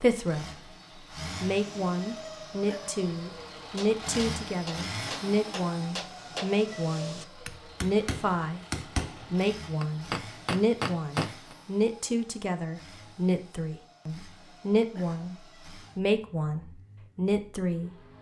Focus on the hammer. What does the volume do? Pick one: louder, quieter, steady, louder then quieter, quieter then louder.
louder.